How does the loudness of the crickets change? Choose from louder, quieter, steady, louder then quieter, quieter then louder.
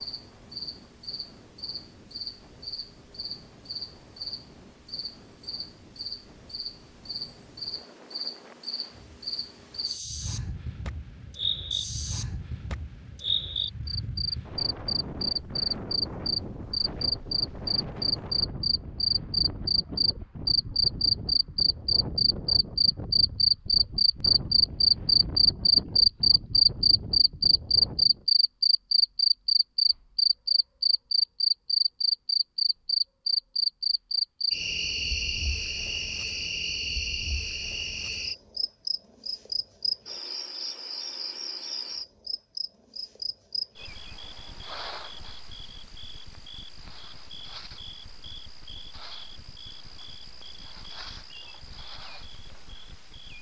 louder then quieter.